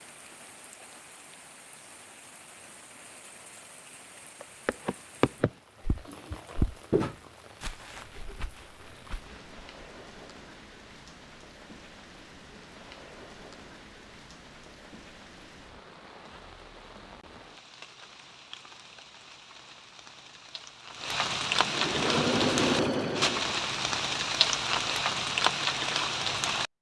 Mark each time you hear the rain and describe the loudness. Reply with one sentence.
The rain can be heard from 0.0 to 26.7 s, getting louder.